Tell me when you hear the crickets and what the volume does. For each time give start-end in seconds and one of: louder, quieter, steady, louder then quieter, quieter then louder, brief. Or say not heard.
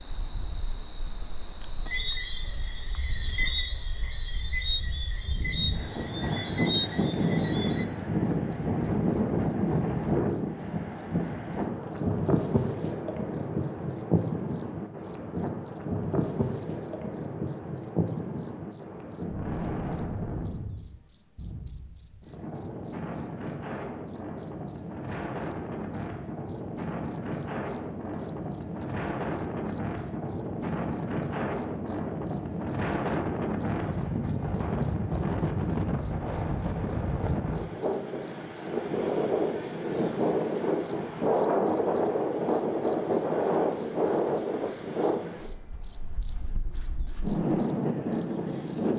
0.0-48.9 louder.